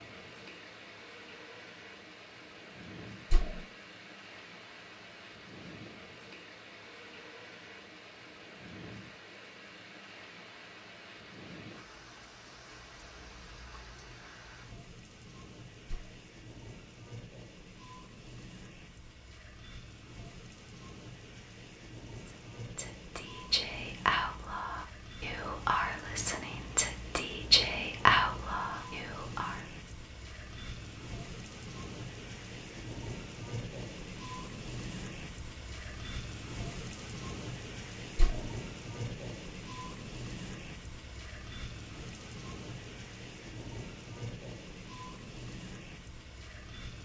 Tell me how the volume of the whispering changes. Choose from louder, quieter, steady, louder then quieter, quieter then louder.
quieter then louder.